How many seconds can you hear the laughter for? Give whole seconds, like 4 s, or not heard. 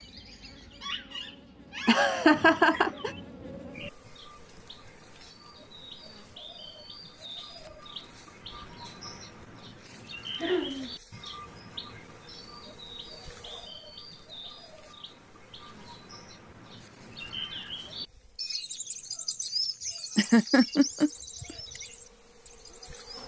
3 s.